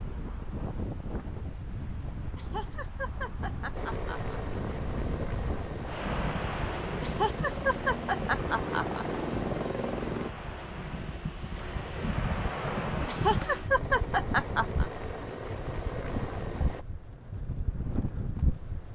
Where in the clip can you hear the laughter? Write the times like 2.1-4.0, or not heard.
2.4-4.3, 7.0-9.1, 13.1-14.8.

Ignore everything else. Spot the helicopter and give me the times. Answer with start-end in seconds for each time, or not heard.
3.7-10.3, 13.7-16.9.